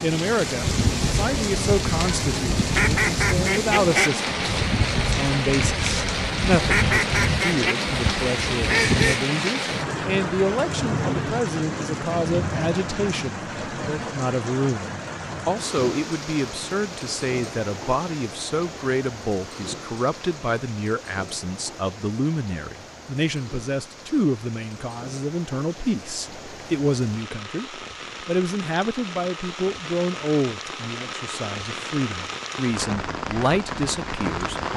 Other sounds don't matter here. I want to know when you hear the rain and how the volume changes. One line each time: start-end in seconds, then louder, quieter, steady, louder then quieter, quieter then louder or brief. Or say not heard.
0.0-34.7 quieter then louder.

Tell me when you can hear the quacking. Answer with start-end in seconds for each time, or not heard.
0.6-9.2.